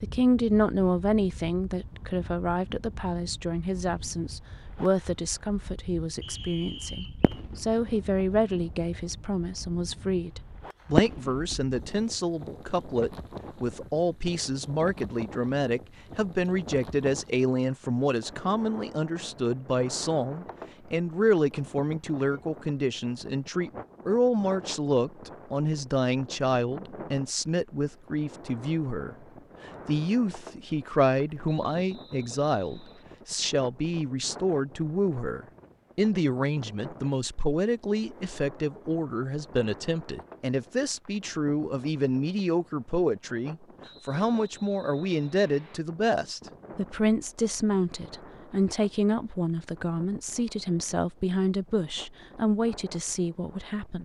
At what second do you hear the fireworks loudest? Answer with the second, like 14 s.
11 s.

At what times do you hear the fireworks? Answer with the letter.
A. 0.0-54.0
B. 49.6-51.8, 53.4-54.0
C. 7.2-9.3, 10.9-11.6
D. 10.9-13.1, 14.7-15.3
C.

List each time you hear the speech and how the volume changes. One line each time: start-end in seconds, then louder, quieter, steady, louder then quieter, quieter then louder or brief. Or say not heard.
0.0-54.0 steady.